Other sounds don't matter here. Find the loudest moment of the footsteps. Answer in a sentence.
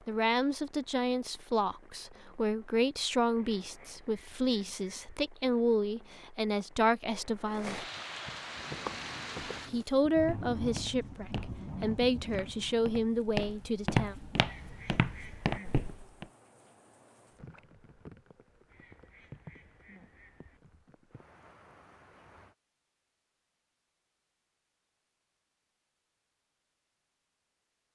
The loudest moment of the footsteps is at 14 seconds.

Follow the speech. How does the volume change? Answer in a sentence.
The loudness of the speech stays about the same.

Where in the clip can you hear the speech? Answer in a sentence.
You can hear the speech from 0.1 to 7.8 s and from 9.7 to 14.2 s.